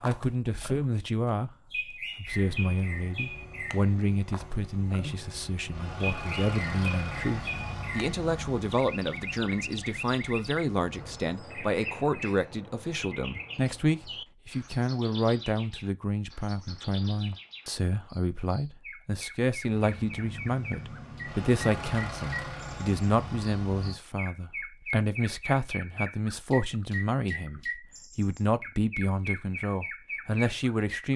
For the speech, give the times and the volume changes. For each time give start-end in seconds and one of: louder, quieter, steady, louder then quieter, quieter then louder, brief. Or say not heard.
0.0-1.5 brief
2.1-31.1 steady.